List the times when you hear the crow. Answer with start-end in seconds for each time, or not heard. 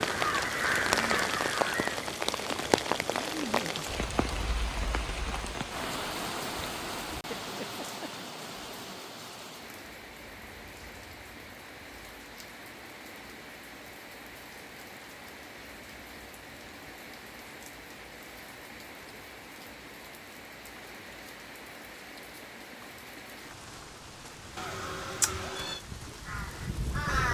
0.0-2.0, 24.3-27.2.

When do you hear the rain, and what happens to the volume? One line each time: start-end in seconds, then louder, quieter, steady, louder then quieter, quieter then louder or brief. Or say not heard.
0.0-27.1 quieter.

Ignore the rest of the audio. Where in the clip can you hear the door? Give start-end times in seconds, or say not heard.
not heard.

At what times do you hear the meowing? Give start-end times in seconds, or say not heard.
24.6-25.8.